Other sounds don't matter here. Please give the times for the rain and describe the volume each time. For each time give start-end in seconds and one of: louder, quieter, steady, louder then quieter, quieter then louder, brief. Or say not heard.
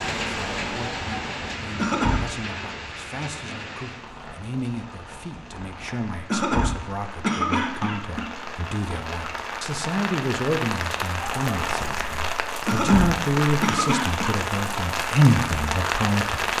0.0-16.5 quieter then louder.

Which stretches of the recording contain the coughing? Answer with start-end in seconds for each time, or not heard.
1.8-2.3, 6.3-8.3, 12.7-14.3.